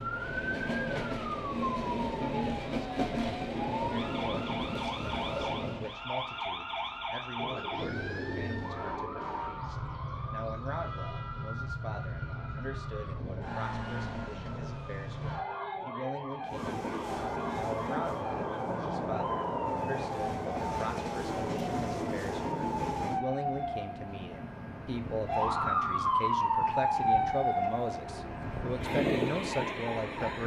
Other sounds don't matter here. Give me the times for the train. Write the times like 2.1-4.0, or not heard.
0.0-6.0, 16.4-30.4.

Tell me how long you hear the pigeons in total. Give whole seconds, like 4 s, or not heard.
4 s.